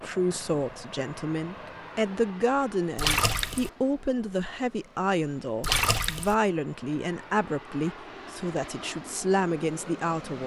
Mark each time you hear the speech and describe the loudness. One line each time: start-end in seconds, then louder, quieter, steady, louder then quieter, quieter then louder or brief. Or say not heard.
0.0-10.4 steady.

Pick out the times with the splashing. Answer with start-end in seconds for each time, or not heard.
3.0-3.7, 5.6-6.3.